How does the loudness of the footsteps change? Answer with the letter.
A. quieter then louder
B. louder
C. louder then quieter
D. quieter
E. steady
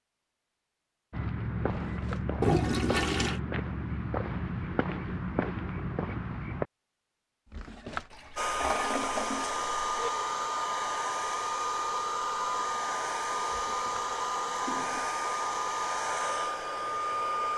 E.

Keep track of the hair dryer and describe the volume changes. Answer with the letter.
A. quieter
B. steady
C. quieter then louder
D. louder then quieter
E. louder
B.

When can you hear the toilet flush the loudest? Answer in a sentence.
The loudest moment of the toilet flush is at 3 seconds.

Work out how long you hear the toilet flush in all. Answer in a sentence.
The toilet flush can be heard for 4 seconds in total.